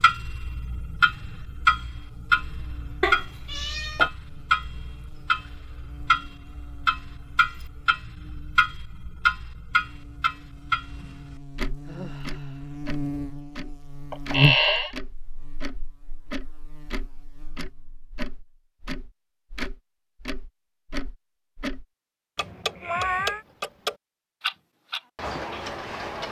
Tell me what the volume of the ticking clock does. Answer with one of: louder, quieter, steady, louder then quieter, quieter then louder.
quieter then louder.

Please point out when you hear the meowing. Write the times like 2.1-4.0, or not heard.
3.0-4.1, 14.1-14.9, 22.4-23.4.